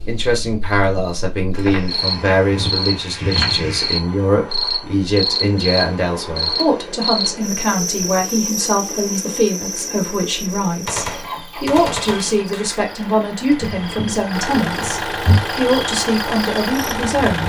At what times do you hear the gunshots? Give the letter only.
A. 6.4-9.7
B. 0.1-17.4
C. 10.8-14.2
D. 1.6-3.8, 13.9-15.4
C.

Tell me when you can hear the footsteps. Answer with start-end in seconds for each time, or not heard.
1.6-3.8, 13.9-15.4.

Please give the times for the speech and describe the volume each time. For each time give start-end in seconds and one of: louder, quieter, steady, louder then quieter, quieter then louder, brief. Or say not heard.
0.1-17.4 steady.